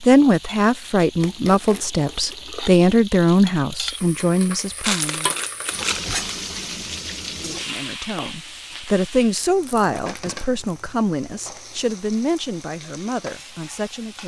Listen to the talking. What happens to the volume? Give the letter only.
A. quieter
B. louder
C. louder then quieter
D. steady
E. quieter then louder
A.